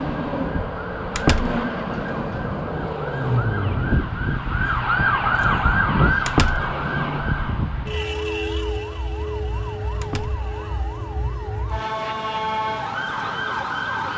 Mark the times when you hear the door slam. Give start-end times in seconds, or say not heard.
1.1-1.6, 6.2-6.7, 10.0-10.4.